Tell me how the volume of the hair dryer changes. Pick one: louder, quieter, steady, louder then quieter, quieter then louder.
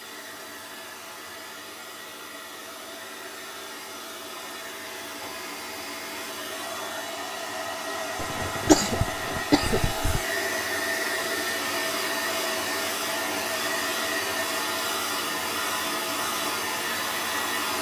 louder.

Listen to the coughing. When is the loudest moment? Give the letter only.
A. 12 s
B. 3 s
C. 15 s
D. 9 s
D.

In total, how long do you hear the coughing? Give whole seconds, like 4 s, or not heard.
2 s.